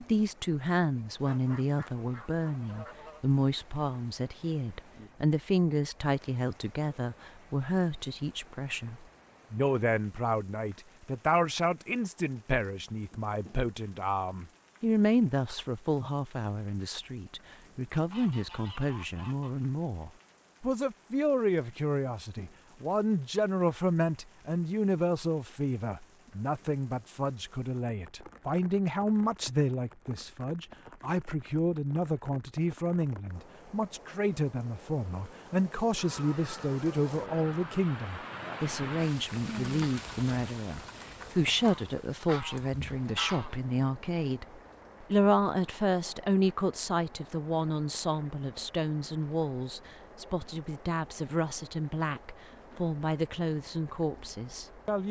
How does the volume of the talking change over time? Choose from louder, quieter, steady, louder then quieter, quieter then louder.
steady.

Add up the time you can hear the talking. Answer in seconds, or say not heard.
55 s.